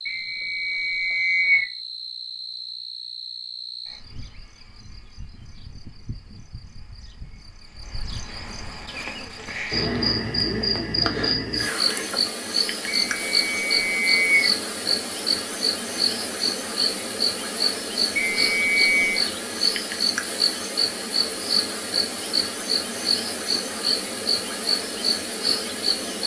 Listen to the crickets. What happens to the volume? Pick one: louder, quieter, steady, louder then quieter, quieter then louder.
louder.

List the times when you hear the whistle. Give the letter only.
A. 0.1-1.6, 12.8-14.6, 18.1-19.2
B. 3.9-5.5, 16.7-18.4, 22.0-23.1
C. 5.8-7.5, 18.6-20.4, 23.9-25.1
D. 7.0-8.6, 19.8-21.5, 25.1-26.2
A.